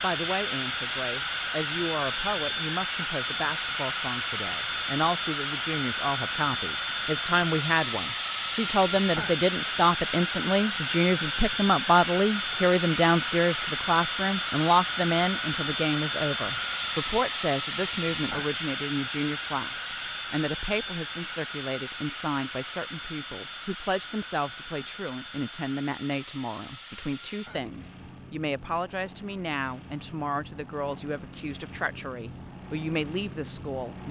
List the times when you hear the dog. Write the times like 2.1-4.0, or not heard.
not heard.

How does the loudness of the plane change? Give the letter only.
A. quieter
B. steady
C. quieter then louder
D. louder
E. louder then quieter
A.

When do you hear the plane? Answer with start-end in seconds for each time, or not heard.
0.0-34.0.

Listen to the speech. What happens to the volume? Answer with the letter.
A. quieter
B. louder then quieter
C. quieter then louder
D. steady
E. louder
B.